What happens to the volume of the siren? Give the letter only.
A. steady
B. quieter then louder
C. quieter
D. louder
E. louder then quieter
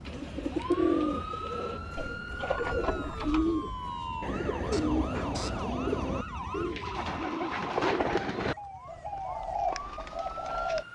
A.